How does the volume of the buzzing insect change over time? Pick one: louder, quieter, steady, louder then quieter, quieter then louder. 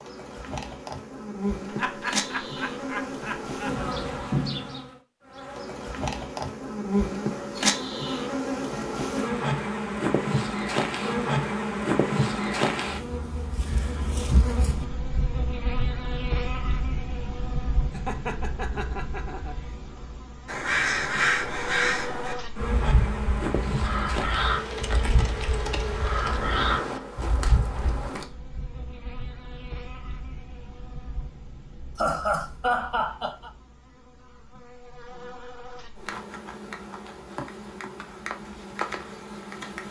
quieter.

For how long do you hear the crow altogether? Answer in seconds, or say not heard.
8 s.